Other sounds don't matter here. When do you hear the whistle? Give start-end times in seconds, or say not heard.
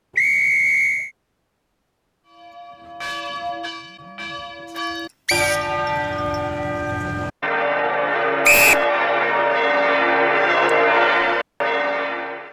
0.1-1.1, 5.2-5.9, 8.4-8.8.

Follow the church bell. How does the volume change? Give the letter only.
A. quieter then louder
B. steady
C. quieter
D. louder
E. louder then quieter
D.